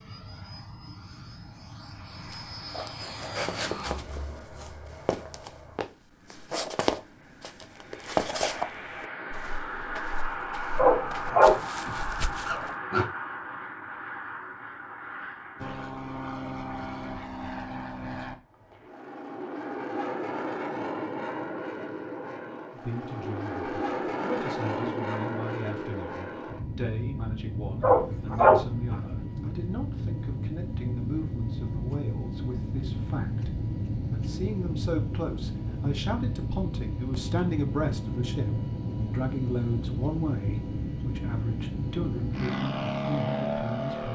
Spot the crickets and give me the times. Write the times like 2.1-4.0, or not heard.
not heard.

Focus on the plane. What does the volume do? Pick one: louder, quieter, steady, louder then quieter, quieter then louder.
louder.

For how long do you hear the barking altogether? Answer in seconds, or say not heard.
4 s.